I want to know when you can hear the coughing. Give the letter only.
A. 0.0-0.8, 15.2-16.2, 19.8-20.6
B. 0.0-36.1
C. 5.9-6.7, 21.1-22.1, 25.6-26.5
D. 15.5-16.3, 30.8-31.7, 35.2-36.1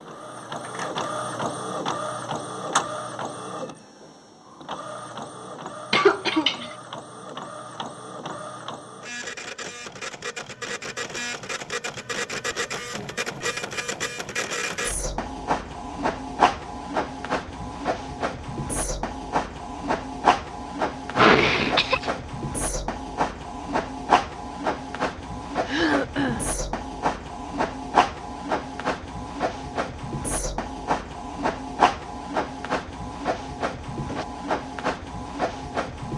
C.